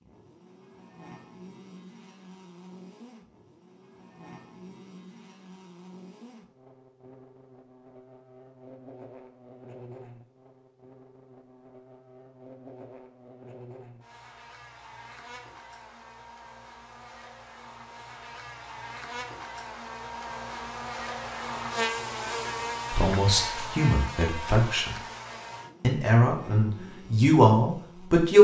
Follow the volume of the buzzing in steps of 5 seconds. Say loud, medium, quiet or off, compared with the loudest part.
quiet, quiet, quiet, medium, loud, medium.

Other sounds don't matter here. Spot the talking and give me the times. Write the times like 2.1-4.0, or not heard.
22.9-24.9, 25.8-28.3.